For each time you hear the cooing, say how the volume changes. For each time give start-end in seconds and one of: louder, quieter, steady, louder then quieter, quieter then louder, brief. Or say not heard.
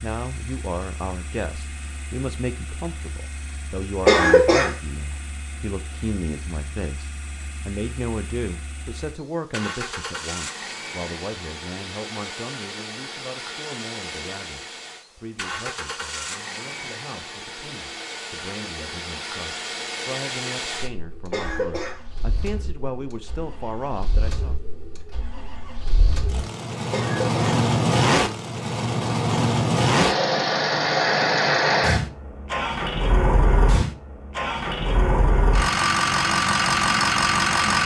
not heard.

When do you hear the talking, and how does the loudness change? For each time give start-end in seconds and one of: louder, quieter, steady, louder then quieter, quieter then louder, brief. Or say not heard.
0.0-24.6 quieter then louder.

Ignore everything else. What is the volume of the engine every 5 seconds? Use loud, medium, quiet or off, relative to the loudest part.
quiet, quiet, quiet, quiet, quiet, loud, loud, loud.